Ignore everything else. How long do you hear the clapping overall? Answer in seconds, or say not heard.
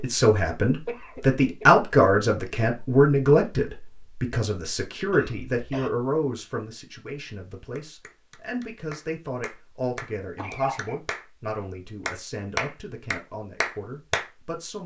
6 s.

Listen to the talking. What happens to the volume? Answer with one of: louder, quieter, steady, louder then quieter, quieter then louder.
quieter.